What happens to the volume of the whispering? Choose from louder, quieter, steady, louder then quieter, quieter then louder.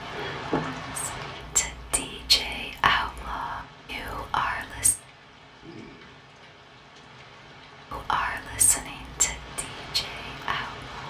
quieter.